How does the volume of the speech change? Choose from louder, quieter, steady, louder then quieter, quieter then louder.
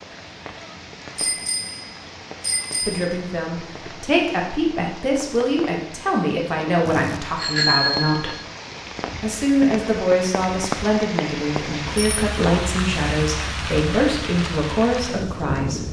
steady.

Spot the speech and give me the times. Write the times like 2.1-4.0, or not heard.
2.9-8.3, 9.2-15.8.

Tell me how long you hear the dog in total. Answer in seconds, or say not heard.
not heard.